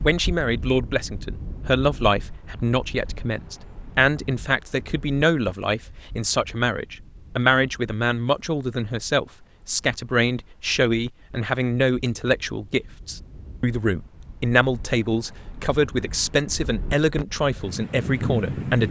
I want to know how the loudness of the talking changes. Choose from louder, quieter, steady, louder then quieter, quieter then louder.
steady.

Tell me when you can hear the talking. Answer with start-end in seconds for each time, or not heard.
0.0-18.8.